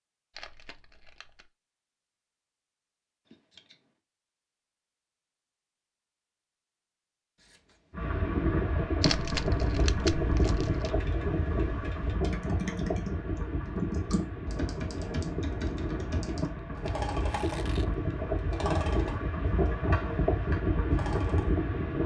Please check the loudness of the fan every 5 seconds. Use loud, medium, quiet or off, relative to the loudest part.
off, loud, loud, loud, loud.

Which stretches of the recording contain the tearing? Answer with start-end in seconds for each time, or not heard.
0.3-1.5, 9.0-10.9, 17.2-17.9.